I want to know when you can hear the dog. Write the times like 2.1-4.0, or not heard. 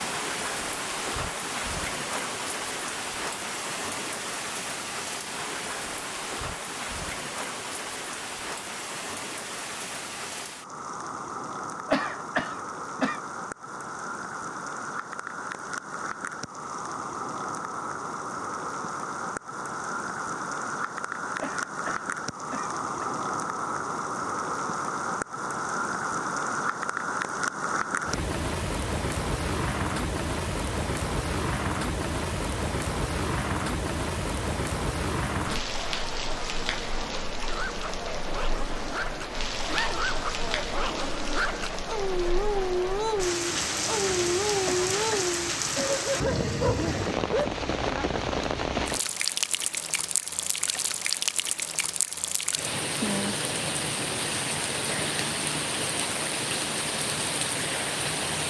37.4-48.1.